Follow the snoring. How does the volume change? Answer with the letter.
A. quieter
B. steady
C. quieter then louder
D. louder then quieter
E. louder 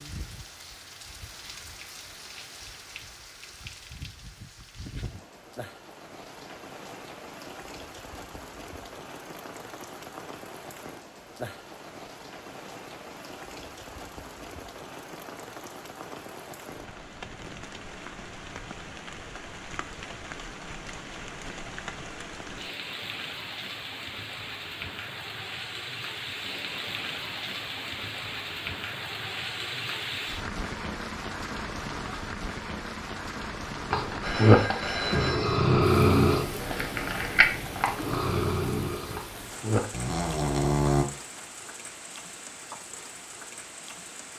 A.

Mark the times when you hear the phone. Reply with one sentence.
You can hear the phone from 34.2 to 35.6 s.